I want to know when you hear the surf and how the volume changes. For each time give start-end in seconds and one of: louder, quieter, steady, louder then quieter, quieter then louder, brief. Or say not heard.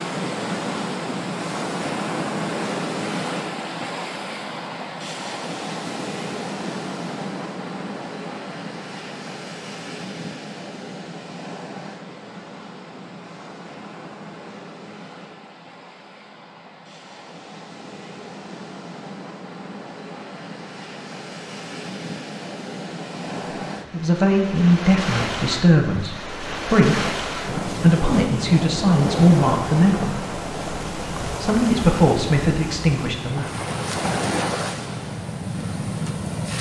0.0-36.5 quieter then louder.